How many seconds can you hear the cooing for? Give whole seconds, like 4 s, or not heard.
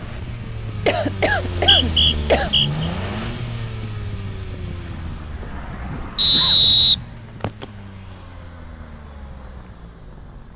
not heard.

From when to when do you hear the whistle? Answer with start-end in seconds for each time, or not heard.
1.5-2.9, 6.2-7.7.